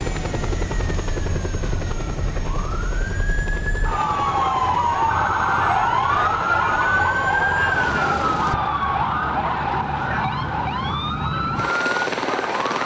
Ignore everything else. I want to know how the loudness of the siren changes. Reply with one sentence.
The loudness of the siren goes up, then down.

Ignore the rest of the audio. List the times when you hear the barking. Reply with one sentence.
The barking can't be heard in this clip.